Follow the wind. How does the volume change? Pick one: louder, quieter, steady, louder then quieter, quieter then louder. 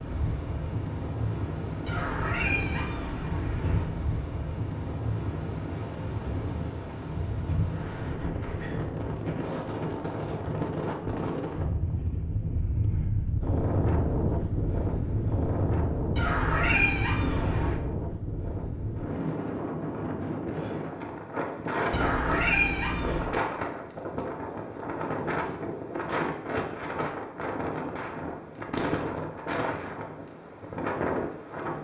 steady.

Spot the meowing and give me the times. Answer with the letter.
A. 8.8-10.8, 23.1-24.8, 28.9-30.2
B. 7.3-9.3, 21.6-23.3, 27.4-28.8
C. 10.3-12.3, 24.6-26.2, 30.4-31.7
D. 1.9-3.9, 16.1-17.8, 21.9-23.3
D.